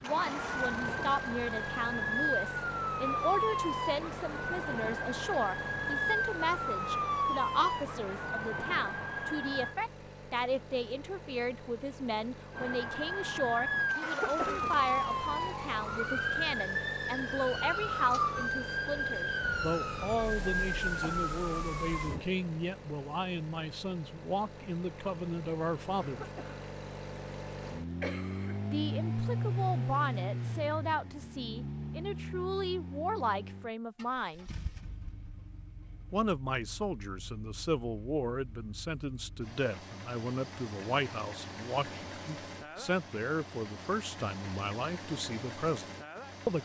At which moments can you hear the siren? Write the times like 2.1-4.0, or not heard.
0.0-9.8, 12.5-22.2.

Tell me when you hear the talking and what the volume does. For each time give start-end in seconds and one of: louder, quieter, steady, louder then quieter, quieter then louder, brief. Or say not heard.
0.0-26.2 steady
28.7-34.5 quieter then louder
36.1-46.6 steady.